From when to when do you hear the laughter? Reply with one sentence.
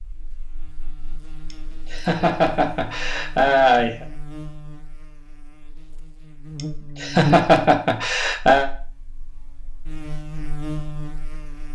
The laughter can be heard from 1.5 to 4.0 s and from 6.5 to 8.7 s.